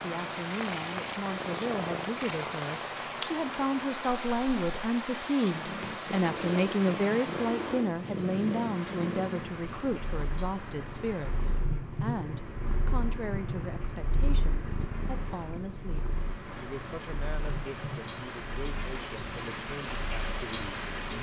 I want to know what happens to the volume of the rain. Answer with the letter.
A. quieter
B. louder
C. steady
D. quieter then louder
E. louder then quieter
D.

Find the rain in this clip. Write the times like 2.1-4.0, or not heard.
0.0-21.1.